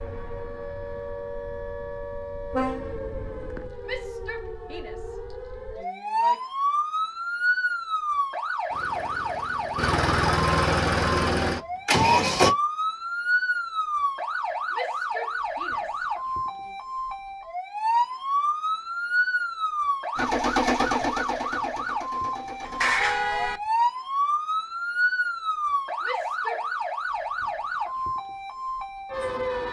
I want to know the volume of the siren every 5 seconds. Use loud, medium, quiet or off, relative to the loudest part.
medium, loud, loud, loud, loud, loud.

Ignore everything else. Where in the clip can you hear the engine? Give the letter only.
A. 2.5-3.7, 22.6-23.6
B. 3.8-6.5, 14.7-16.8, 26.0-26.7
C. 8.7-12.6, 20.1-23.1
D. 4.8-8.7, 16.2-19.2
C.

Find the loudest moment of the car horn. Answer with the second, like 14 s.
23 s.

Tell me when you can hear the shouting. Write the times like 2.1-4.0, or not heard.
3.8-6.5, 14.7-16.8, 26.0-26.7.